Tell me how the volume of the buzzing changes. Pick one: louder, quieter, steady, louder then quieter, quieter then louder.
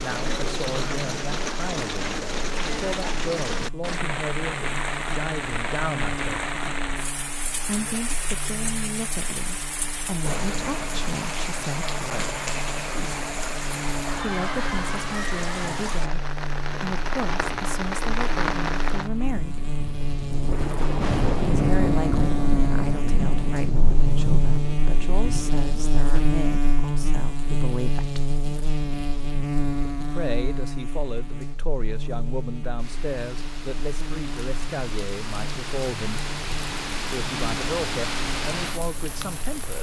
louder then quieter.